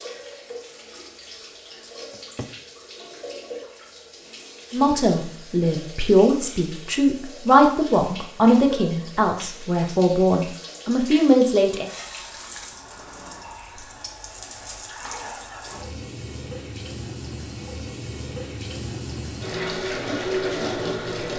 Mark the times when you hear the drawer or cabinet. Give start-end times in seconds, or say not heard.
2.1-2.6.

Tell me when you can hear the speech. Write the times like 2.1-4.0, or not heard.
4.7-11.9.